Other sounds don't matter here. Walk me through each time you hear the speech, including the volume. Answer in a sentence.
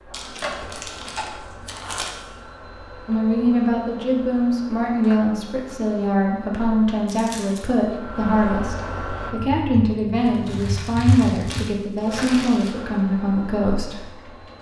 The speech can be heard from 3.0 to 14.0 s, at a steady volume.